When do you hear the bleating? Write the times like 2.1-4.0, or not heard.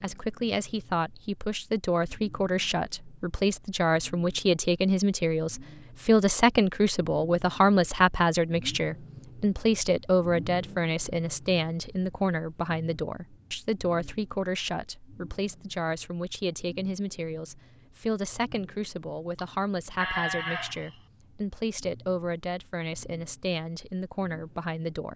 19.4-21.0.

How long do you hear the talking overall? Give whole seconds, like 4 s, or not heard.
25 s.